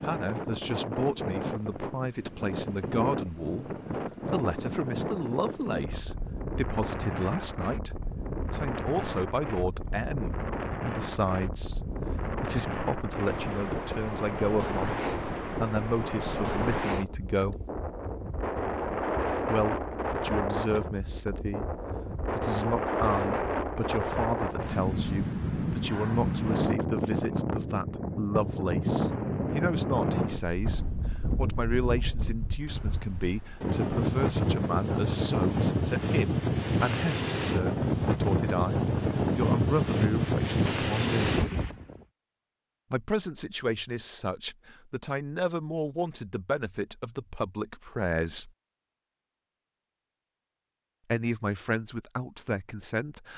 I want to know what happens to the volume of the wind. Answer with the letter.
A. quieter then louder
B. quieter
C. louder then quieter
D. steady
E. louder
E.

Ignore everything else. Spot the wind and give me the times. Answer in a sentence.
You can hear the wind from 0.0 to 42.0 s.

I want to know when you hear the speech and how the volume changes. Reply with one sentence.
You can hear the speech from 0.0 to 17.6 s, at a steady volume; from 19.5 to 41.4 s, at a steady volume; from 42.9 to 48.5 s, at a steady volume; and briefly from 51.1 to 53.3 s.